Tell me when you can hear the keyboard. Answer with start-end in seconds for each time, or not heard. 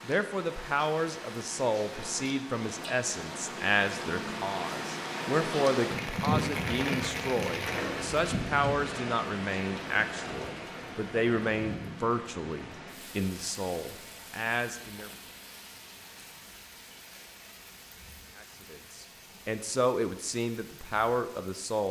not heard.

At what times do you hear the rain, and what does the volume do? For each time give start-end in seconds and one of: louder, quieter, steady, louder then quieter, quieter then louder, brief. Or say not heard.
0.0-21.8 louder then quieter.